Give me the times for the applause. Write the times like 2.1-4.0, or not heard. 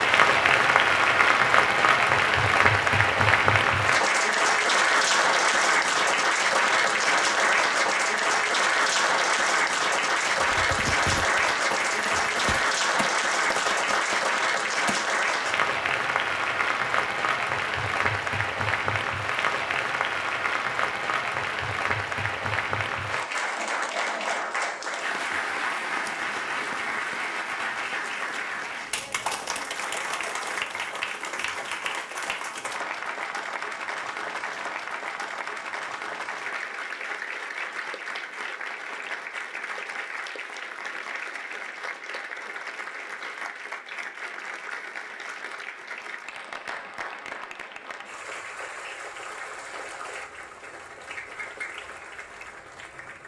0.0-53.2.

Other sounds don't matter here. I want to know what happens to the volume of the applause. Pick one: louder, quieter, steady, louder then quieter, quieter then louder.
quieter.